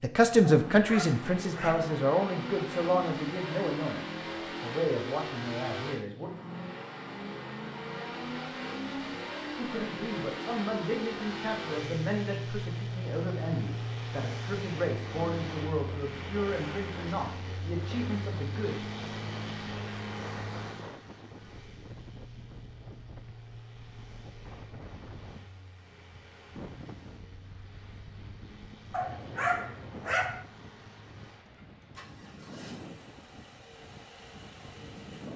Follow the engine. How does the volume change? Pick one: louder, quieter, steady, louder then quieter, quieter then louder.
quieter.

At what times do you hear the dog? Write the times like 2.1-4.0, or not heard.
0.4-1.9, 28.9-30.4.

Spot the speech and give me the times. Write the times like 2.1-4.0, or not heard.
0.0-6.3, 9.6-18.8.